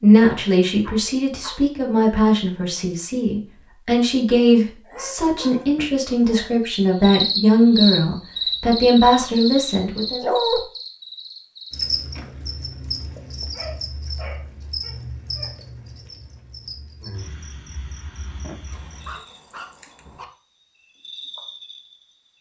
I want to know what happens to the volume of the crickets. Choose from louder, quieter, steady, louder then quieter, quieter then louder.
quieter.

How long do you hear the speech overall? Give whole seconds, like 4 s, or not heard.
10 s.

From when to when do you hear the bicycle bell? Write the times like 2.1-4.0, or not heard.
not heard.